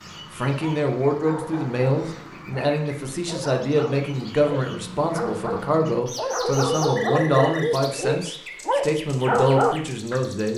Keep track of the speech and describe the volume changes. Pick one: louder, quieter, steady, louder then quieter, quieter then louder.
steady.